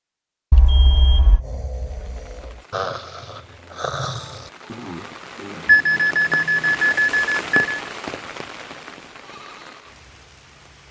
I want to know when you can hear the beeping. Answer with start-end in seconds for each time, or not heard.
0.5-1.4, 5.7-7.5.